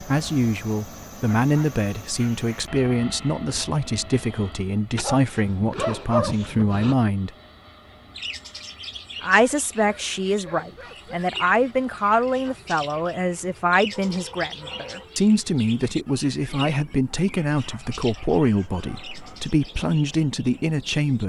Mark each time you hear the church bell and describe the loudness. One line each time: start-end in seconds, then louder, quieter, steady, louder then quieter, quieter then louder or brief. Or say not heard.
not heard.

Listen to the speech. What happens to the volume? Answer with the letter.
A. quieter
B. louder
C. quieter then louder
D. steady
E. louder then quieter
D.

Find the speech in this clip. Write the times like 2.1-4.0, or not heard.
0.0-7.3, 9.2-21.2.